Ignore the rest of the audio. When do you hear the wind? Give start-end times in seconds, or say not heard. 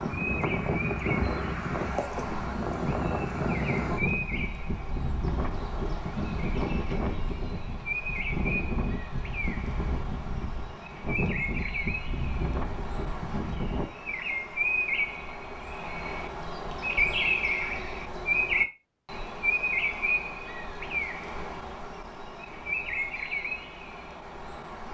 0.0-13.9.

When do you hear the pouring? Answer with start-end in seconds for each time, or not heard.
not heard.